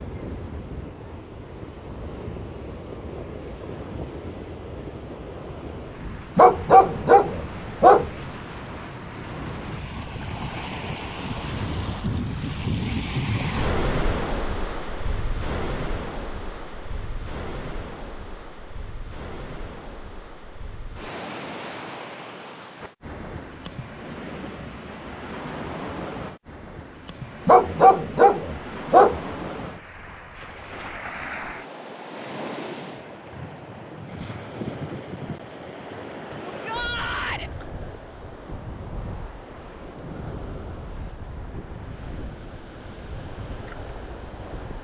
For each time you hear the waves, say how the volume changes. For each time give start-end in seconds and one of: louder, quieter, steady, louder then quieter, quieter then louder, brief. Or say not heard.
0.0-44.7 louder then quieter.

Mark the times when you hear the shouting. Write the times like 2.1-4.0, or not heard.
36.5-37.5.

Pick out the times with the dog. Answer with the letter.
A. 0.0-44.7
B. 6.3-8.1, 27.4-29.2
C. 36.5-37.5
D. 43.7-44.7
B.